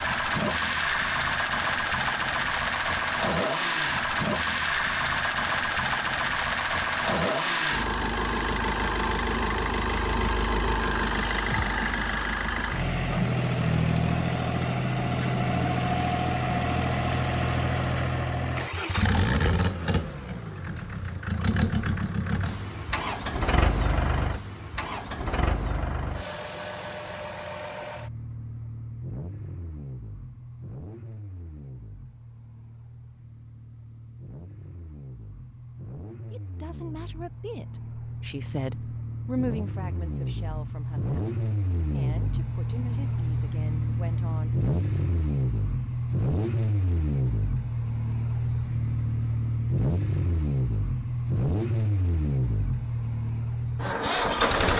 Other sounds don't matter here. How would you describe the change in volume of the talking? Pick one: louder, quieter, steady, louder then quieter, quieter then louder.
louder then quieter.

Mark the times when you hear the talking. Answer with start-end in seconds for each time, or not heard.
36.3-44.5.